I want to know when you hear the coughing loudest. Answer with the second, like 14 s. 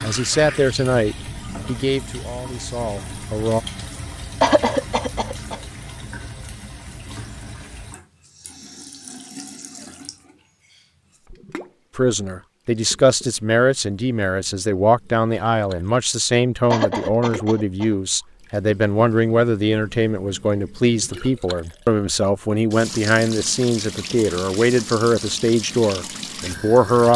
5 s.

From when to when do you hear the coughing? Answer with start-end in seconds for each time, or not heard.
4.4-5.6, 16.7-17.9.